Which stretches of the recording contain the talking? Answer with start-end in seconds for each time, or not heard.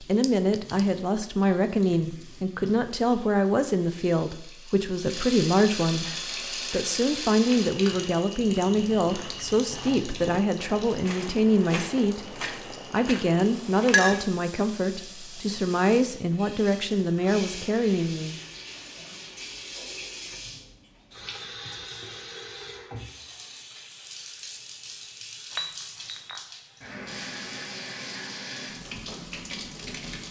0.0-18.4.